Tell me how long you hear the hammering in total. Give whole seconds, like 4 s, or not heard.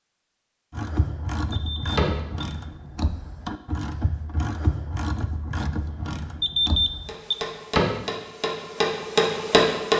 3 s.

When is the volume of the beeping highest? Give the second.
7 s.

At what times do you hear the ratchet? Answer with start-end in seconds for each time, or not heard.
0.7-7.2.